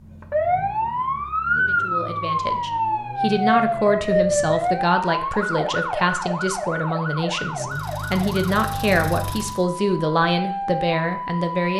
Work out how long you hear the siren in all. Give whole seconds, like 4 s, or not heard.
11 s.